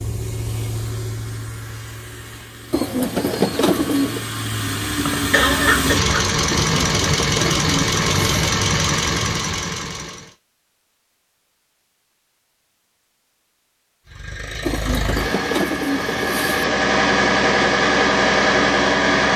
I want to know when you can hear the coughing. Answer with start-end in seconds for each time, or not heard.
5.0-6.2.